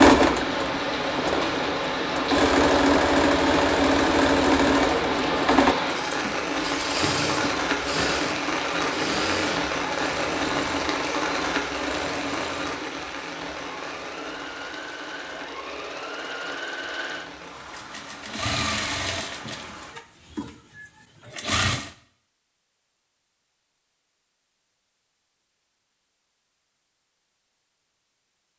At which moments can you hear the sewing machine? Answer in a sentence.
The sewing machine can be heard from 0.0 to 21.9 s.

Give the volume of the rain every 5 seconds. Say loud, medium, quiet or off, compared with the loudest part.
loud, loud, loud, quiet, off, off.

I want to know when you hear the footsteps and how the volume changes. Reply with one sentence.
The footsteps can't be heard in this clip.